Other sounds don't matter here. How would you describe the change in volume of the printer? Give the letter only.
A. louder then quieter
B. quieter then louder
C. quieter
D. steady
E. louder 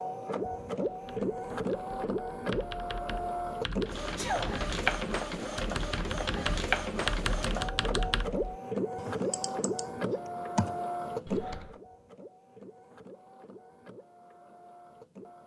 C.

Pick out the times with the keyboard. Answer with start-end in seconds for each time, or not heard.
0.8-11.8.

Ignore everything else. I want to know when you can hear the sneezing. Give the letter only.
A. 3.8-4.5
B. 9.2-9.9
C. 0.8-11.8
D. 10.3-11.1
A.